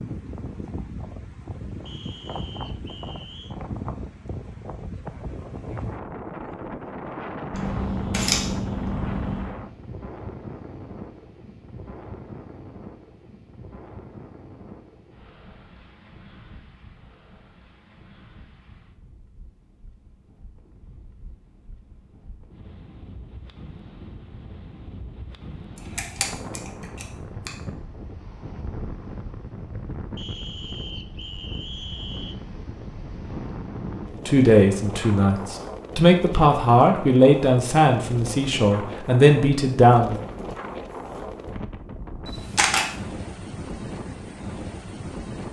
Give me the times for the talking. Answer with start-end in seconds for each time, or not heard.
34.2-40.2.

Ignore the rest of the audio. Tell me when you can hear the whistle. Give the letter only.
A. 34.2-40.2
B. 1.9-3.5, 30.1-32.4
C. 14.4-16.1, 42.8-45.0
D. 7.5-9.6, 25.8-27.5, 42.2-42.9
B.